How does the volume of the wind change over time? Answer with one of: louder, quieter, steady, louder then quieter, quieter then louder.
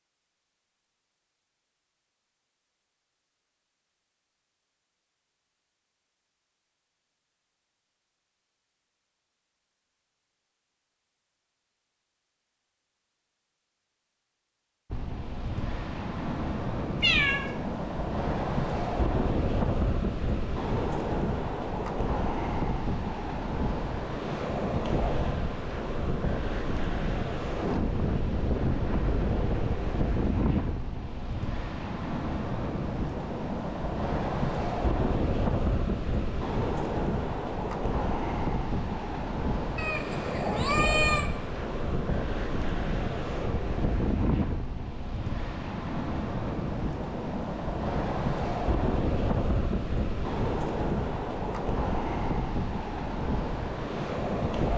steady.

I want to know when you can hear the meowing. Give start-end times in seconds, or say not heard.
17.0-17.4, 39.8-41.3.